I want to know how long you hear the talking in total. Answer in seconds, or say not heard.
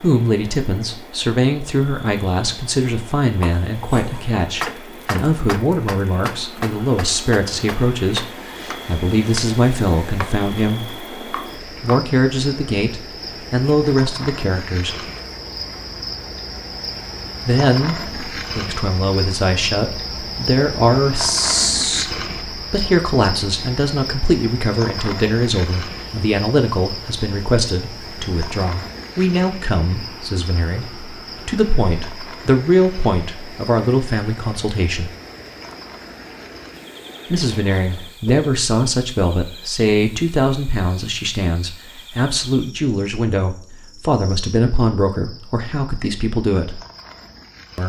41 s.